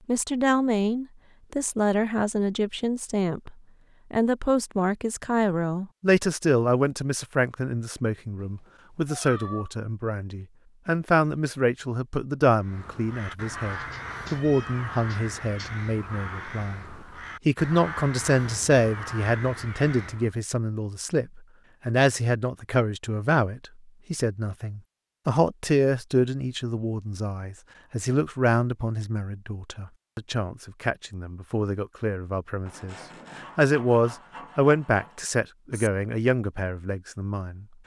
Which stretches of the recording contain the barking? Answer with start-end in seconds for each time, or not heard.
not heard.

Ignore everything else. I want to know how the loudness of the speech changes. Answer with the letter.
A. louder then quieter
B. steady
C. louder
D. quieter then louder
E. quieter
B.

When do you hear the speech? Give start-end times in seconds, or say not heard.
0.1-37.6.